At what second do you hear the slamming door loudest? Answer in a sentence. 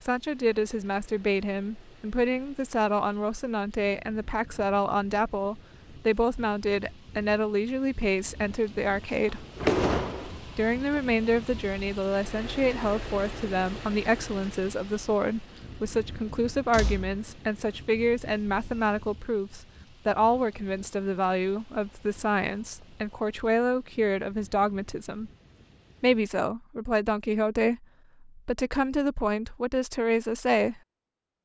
The loudest moment of the slamming door is at 10 seconds.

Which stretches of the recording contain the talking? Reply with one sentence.
The talking can be heard from 0.0 to 9.4 s, from 10.6 to 25.3 s and from 26.0 to 30.8 s.